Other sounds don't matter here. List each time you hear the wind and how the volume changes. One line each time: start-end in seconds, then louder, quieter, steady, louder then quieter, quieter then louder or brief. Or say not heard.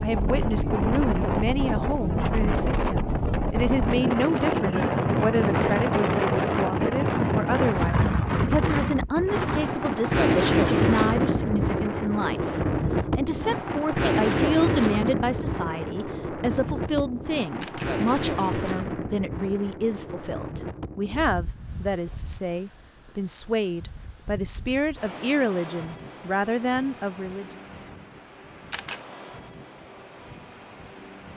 0.0-31.3 quieter.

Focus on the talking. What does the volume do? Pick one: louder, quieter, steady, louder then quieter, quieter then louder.
steady.